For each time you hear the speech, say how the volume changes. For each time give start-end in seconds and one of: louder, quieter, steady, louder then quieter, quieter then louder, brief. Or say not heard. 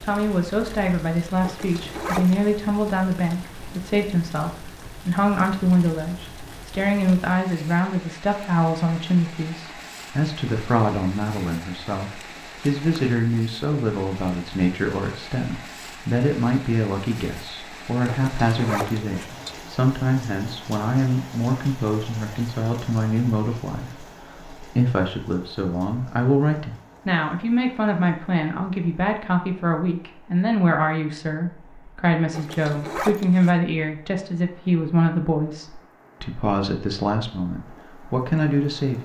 0.0-38.9 steady.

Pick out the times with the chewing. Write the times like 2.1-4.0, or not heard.
not heard.